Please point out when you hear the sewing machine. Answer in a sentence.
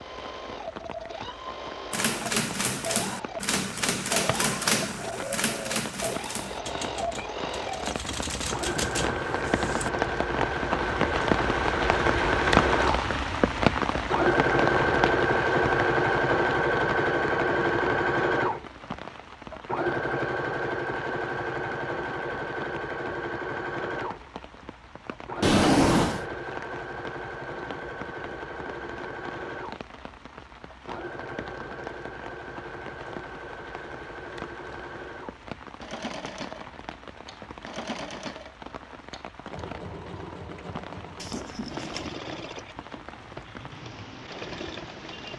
You can hear the sewing machine from 0.0 to 45.3 s.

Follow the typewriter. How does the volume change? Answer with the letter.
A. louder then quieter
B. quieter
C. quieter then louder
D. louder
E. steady
C.